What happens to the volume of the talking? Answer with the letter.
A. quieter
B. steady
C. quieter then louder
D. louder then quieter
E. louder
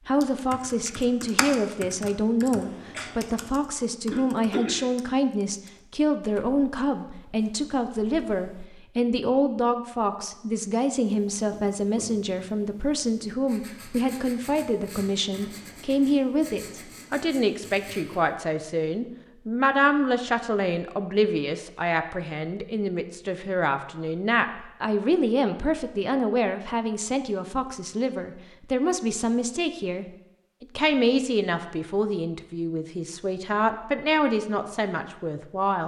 B.